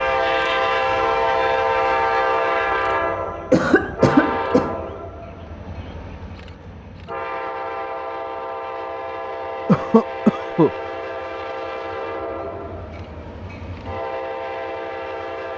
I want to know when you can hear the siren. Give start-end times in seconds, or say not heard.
not heard.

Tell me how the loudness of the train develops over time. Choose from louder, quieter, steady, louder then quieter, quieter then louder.
quieter.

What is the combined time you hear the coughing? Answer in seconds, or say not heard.
2 s.